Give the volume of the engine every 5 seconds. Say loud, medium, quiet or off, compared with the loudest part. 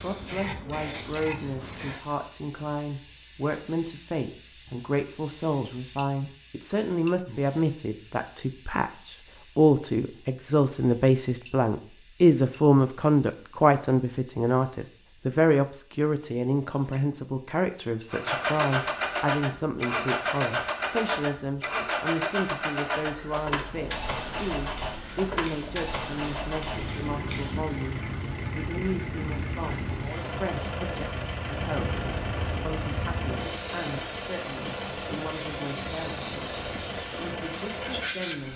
off, off, off, loud, loud, medium, medium, medium.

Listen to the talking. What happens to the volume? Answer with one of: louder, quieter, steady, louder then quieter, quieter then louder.
louder then quieter.